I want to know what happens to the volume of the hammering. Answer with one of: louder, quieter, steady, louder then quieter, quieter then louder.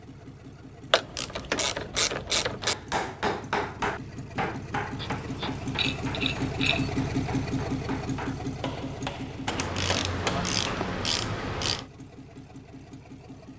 quieter then louder.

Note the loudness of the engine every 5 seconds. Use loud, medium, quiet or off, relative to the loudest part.
medium, loud, quiet.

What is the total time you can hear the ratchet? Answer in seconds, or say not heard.
6 s.